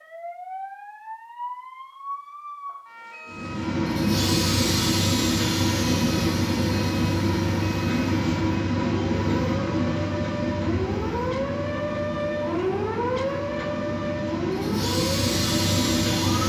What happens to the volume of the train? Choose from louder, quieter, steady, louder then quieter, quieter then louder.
quieter then louder.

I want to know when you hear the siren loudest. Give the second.
13 s.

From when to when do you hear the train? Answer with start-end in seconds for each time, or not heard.
3.2-16.4.